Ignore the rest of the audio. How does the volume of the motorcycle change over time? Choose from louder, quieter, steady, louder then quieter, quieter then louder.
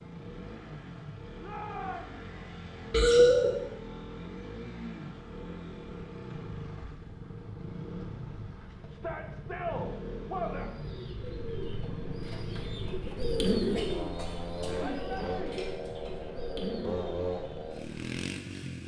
louder.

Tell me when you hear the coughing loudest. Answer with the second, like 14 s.
3 s.